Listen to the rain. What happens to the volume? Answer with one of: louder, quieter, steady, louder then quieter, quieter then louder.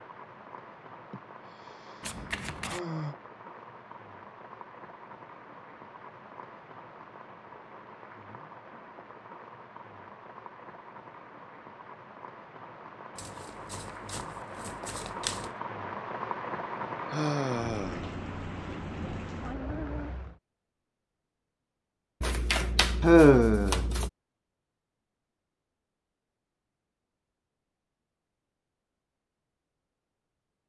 louder.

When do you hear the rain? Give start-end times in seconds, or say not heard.
0.0-20.4.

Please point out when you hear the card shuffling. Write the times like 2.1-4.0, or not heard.
2.0-2.8, 13.2-15.5, 22.2-24.1.